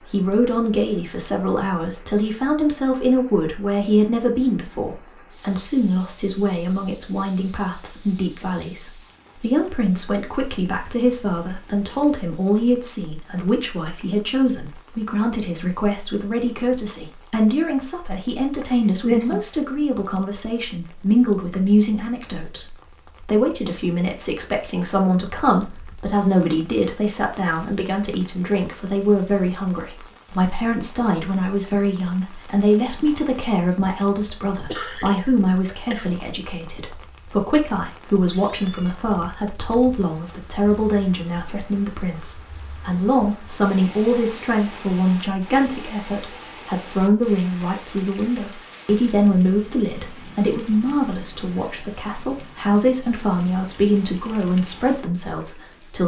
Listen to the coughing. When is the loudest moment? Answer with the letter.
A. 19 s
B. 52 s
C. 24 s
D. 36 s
A.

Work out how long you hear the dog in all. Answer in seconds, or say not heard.
not heard.